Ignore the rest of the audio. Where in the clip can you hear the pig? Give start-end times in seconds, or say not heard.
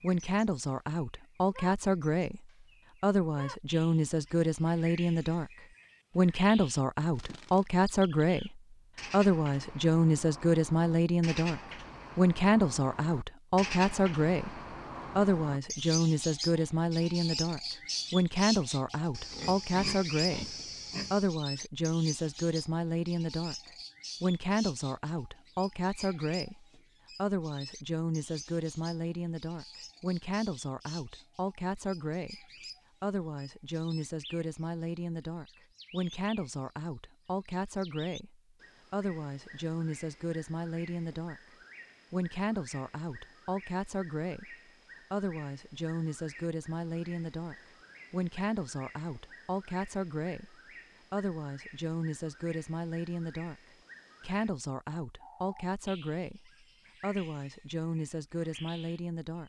19.1-21.3.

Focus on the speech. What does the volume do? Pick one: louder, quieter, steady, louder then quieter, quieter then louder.
quieter.